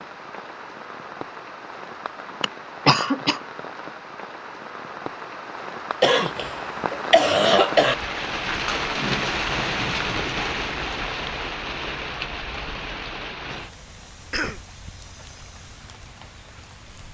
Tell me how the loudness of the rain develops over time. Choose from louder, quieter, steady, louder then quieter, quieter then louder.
louder then quieter.